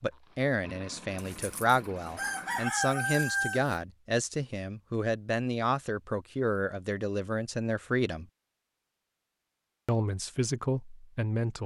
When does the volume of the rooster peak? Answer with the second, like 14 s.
3 s.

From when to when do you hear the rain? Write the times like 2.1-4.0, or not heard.
not heard.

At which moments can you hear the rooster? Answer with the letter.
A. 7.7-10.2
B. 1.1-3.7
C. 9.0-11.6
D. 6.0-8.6
B.